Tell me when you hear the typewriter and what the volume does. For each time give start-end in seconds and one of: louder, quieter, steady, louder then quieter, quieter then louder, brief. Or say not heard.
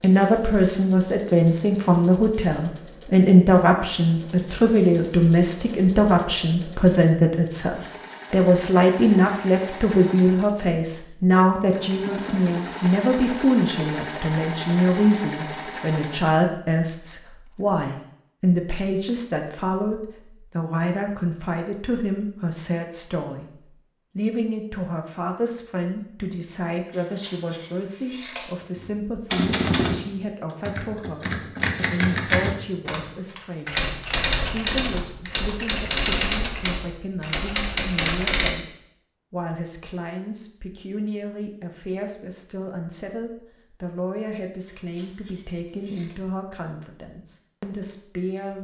28.8-38.5 steady.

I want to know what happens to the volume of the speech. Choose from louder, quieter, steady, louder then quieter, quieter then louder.
quieter.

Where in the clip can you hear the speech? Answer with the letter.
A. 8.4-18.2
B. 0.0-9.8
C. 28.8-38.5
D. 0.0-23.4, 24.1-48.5
D.